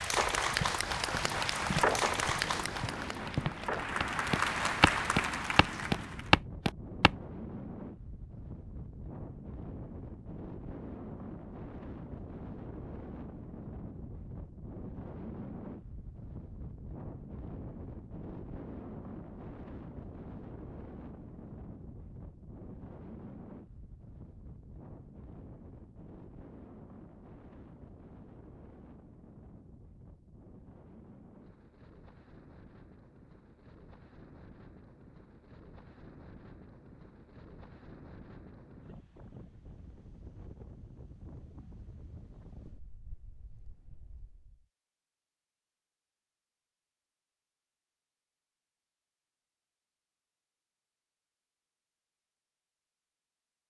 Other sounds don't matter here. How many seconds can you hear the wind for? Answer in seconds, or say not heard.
45 s.